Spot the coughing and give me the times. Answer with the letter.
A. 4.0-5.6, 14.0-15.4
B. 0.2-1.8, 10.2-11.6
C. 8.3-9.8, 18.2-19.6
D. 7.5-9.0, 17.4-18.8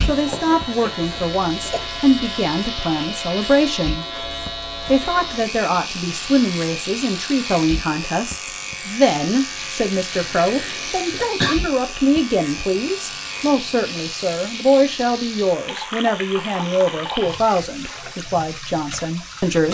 B.